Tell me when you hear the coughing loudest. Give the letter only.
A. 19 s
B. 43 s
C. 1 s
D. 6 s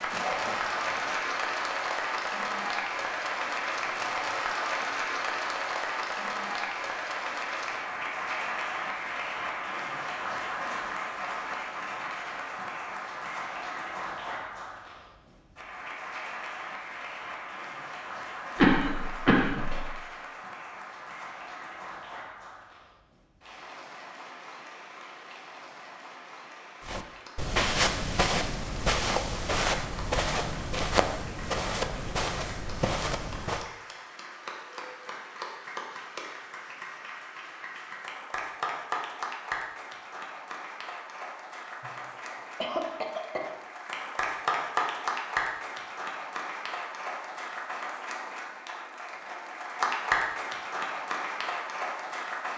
A.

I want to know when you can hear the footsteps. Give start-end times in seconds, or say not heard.
26.9-33.6.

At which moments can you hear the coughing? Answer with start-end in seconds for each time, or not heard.
0.1-1.2, 18.6-19.9, 41.8-43.5.